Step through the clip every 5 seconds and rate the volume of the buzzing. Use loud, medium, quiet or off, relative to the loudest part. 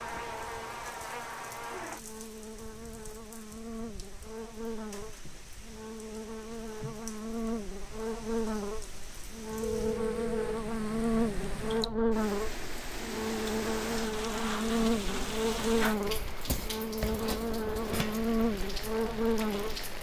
medium, medium, loud, loud.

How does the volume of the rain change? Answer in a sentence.
The volume of the rain goes up.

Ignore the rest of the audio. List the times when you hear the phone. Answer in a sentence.
You can hear the phone from 9.6 to 10.6 s.